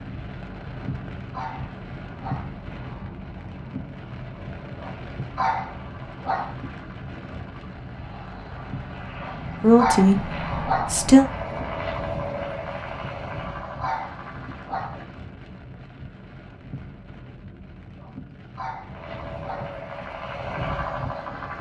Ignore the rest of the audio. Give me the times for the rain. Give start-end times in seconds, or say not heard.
0.0-21.5.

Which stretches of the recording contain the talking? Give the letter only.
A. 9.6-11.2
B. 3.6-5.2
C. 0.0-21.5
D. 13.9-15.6
A.